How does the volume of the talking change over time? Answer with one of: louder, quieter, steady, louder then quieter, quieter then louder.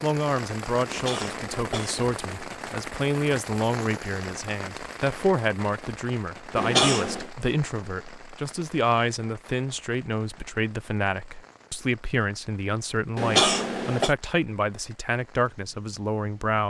steady.